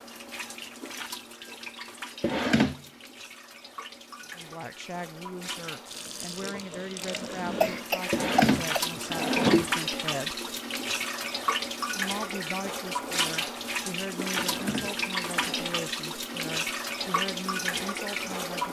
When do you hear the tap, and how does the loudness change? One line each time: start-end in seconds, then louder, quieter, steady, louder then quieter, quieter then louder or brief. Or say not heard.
0.0-18.6 louder.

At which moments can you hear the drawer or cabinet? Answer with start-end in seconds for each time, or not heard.
2.2-2.8, 8.1-9.7, 14.3-15.8.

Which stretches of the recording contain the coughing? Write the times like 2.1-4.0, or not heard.
7.6-8.9.